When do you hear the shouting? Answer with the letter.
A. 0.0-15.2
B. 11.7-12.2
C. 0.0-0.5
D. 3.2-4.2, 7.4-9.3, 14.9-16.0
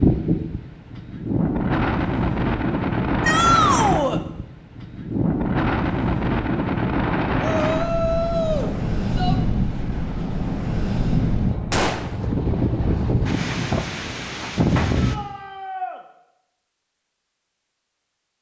D.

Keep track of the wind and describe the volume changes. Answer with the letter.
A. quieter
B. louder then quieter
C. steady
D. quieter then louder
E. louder
C.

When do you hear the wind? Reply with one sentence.
You can hear the wind from 0.0 to 15.2 s.